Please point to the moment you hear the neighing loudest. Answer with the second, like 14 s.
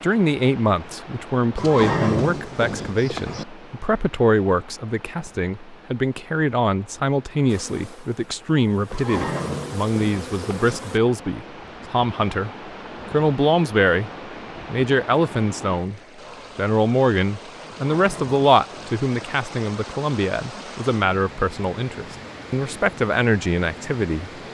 2 s.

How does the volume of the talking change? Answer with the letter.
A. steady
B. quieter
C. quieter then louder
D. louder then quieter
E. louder
A.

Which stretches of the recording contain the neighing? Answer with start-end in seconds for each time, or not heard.
1.6-3.5, 8.9-10.8, 17.6-19.4.